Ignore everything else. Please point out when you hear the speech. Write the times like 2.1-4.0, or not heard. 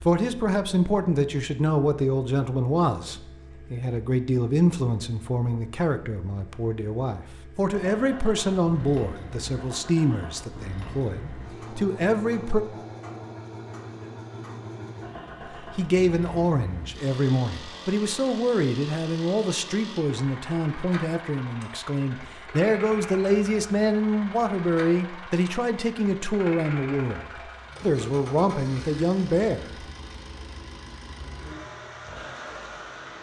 0.0-12.6, 15.5-29.7.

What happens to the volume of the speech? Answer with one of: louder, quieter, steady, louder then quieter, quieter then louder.
steady.